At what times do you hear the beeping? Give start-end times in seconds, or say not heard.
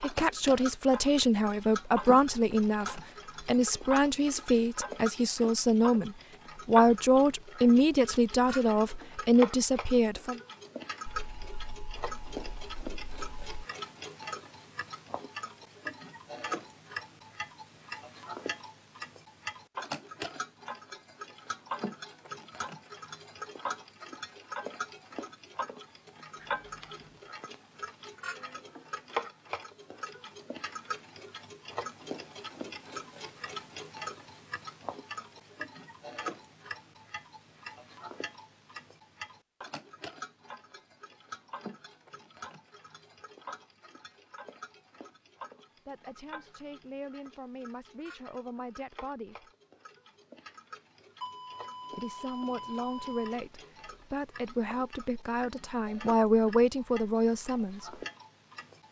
11.1-13.6, 26.4-27.1, 51.2-53.4.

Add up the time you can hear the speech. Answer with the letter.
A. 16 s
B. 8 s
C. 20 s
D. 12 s
C.